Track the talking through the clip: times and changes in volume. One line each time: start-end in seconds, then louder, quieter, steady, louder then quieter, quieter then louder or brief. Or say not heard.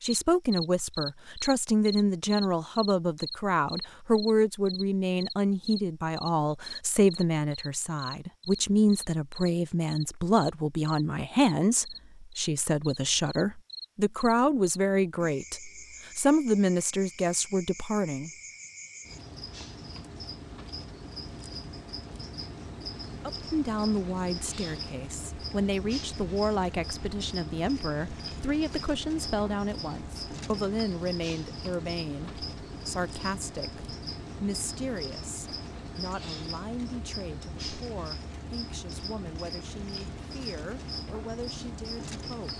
0.0-18.3 steady
23.2-42.5 quieter.